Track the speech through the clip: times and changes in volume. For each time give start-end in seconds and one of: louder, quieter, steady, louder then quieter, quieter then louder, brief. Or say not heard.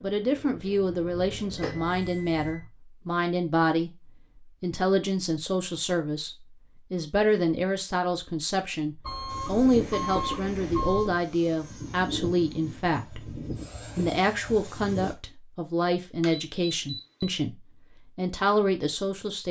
0.0-19.4 steady.